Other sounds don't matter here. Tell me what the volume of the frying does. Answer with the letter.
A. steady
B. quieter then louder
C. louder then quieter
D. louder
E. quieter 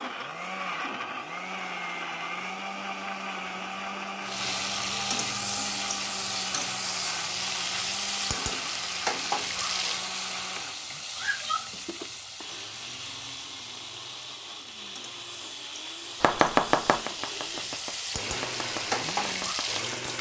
B.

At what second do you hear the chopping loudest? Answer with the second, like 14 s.
17 s.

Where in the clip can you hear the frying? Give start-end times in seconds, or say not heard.
4.2-20.1.